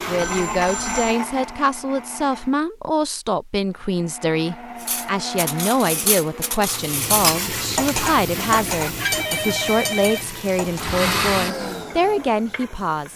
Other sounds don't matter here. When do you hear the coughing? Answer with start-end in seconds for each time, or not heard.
not heard.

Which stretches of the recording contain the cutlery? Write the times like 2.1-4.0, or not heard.
4.8-10.9.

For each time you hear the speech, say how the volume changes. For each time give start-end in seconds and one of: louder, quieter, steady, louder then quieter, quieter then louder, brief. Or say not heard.
0.1-13.1 steady.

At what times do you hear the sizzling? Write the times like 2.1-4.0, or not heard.
6.6-13.1.